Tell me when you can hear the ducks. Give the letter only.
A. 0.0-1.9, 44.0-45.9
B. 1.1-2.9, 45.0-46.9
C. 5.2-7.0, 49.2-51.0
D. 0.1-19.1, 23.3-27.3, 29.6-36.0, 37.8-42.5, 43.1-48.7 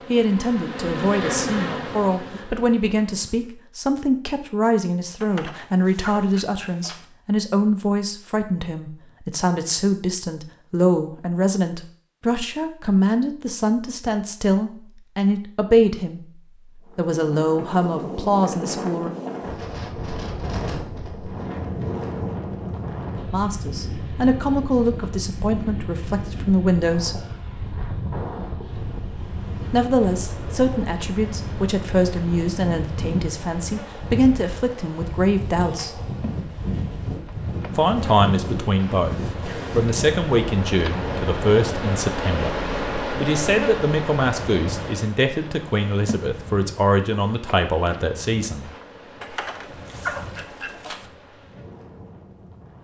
C.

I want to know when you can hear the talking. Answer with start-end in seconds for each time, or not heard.
0.1-19.1, 23.3-27.3, 29.6-36.0, 37.8-42.5, 43.1-48.7.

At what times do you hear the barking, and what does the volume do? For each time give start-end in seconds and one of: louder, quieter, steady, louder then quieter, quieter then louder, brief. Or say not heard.
not heard.